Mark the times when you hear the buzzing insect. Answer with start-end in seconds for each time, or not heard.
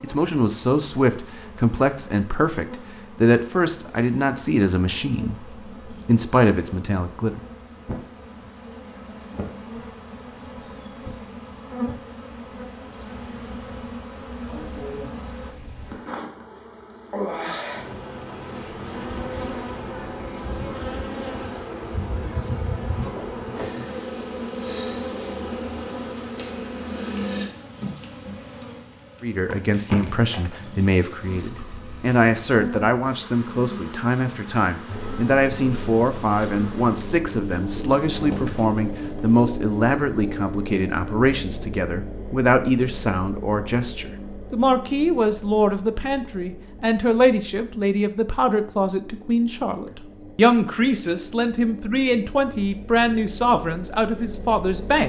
0.0-39.6.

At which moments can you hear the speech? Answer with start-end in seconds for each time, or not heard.
0.0-7.4, 29.2-55.0.